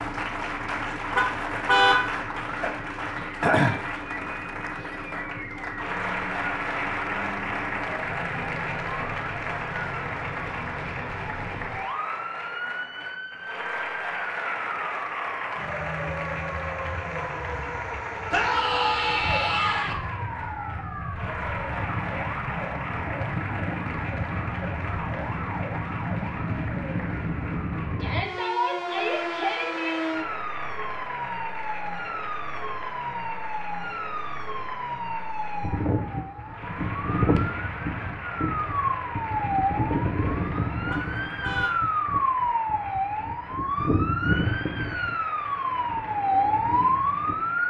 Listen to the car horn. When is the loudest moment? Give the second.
2 s.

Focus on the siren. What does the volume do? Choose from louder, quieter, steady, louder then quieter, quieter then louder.
louder.